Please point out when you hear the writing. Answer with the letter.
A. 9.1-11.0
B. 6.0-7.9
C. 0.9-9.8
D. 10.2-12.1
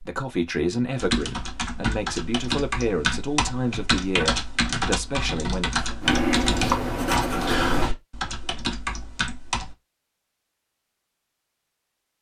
B.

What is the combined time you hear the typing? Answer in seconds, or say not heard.
9 s.